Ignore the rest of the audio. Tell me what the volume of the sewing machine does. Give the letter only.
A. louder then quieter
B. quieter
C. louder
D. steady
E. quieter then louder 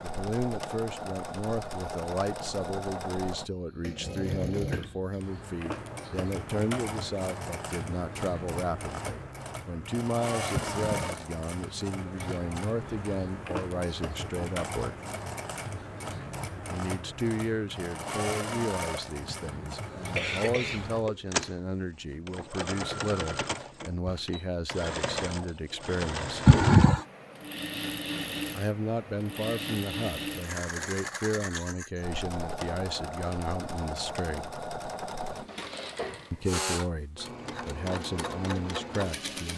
D.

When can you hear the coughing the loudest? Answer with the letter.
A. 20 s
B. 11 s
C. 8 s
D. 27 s
D.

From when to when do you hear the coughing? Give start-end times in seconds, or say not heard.
10.5-11.2, 19.2-21.1, 26.4-27.0.